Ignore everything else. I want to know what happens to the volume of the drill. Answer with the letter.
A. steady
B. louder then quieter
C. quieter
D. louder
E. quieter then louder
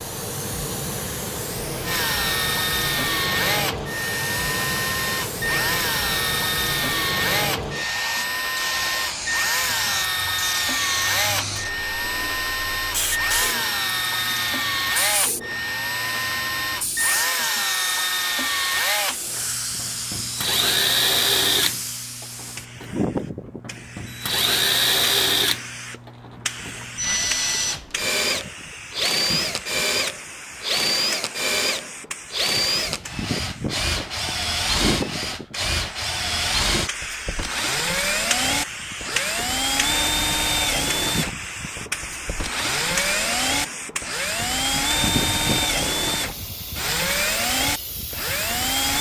A.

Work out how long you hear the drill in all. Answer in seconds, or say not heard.
47 s.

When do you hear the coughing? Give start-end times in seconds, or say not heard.
not heard.